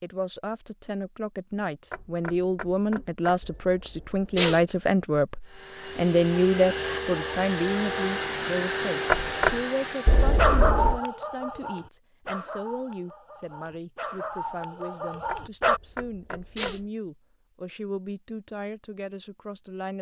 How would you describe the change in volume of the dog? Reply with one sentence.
The loudness of the dog goes down, then up.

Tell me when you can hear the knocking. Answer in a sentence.
The knocking can be heard from 1.9 to 3.2 s, from 9.1 to 9.6 s and from 15.2 to 16.9 s.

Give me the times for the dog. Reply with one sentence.
The dog can be heard from 10.3 to 15.8 s.